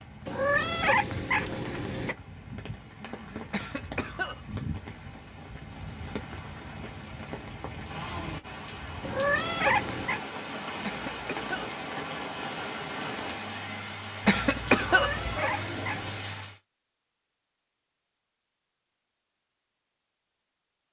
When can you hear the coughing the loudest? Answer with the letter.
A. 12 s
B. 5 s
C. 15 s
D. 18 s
C.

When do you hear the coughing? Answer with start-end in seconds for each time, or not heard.
3.5-4.6, 10.8-11.7, 14.2-15.4.